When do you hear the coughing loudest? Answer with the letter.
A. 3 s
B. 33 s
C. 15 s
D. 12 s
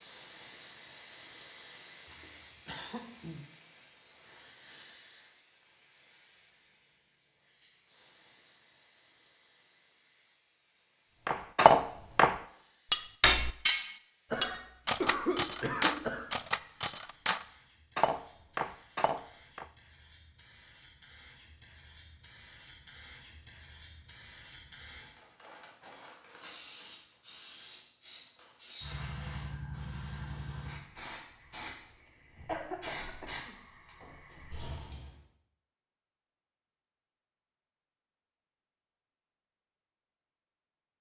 C.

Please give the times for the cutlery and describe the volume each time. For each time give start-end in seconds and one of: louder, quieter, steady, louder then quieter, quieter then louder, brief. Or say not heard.
11.2-19.6 quieter.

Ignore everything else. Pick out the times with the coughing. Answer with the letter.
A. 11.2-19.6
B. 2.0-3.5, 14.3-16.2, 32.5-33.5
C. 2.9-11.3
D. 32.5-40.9
B.